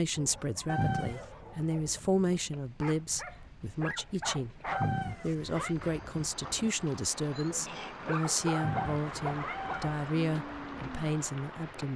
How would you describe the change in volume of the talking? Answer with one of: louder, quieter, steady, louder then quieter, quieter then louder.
steady.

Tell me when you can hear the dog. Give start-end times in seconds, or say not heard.
0.1-11.0.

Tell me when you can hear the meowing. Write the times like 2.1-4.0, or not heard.
0.7-1.3, 4.7-5.8, 8.6-10.0.